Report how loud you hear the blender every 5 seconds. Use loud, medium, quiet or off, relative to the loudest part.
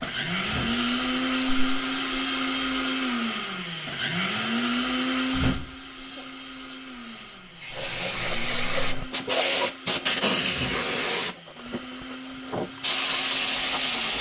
loud, medium, quiet.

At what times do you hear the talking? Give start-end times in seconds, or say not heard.
not heard.